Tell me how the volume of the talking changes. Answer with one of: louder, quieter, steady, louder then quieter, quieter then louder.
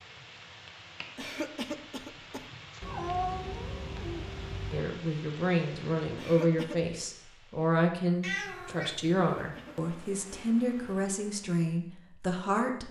steady.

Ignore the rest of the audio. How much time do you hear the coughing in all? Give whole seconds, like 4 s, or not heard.
3 s.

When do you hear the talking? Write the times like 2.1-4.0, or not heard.
4.7-12.8.